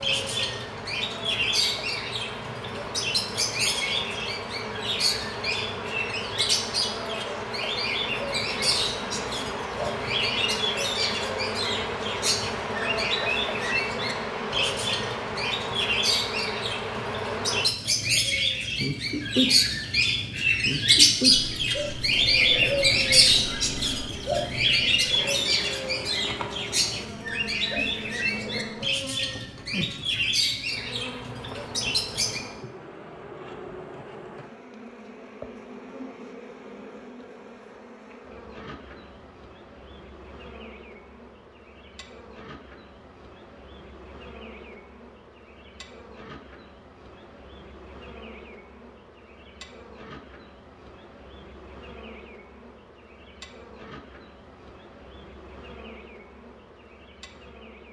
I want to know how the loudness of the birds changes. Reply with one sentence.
The loudness of the birds goes up, then down.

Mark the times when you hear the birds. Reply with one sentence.
You can hear the birds from 0.0 to 32.4 s.